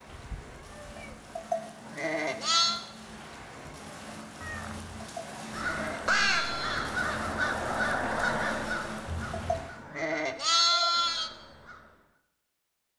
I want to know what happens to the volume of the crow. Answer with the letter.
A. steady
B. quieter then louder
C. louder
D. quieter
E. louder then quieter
D.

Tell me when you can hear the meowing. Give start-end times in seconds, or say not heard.
0.1-1.4, 4.4-4.9, 9.1-9.7.